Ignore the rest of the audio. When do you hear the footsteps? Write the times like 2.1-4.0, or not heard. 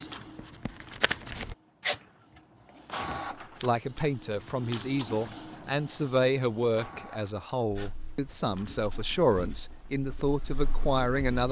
not heard.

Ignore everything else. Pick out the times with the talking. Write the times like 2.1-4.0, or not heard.
3.6-11.4.